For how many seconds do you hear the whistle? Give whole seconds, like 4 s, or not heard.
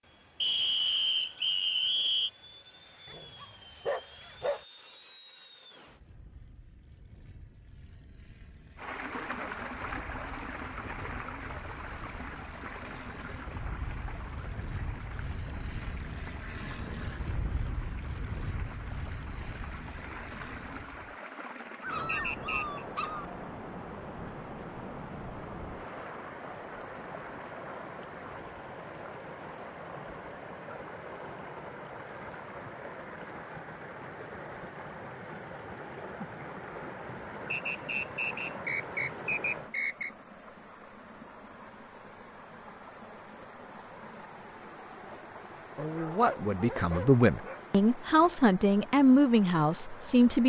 5 s.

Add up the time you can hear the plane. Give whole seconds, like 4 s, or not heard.
21 s.